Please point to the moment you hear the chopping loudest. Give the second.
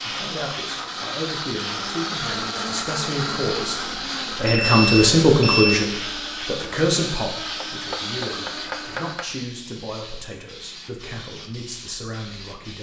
9 s.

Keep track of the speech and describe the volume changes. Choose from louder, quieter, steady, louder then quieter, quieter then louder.
louder then quieter.